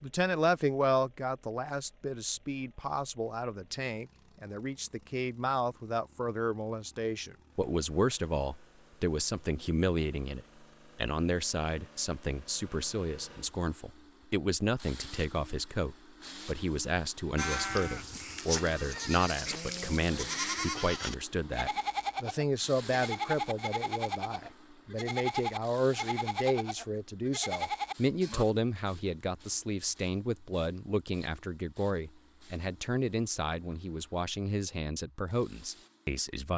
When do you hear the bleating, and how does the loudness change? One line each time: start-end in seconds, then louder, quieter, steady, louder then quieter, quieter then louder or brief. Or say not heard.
17.4-28.4 steady.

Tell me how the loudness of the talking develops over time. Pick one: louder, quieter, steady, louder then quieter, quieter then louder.
steady.